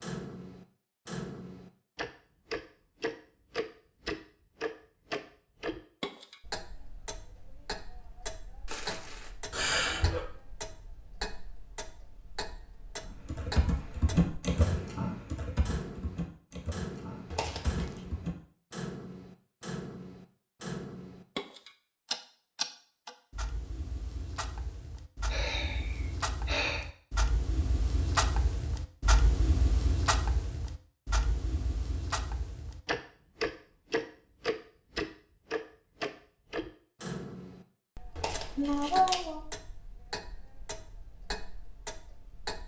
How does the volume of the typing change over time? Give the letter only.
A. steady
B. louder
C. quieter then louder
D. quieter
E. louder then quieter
D.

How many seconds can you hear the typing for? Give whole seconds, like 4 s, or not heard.
5 s.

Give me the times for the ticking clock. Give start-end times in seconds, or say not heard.
0.0-42.6.